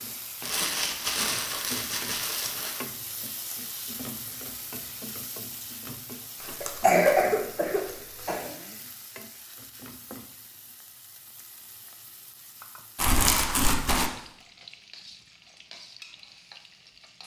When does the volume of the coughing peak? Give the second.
7 s.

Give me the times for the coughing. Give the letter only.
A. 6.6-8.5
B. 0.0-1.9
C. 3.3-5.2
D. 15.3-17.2
A.